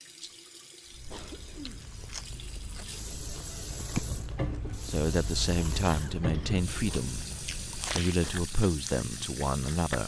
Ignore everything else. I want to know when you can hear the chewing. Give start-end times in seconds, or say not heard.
0.8-10.0.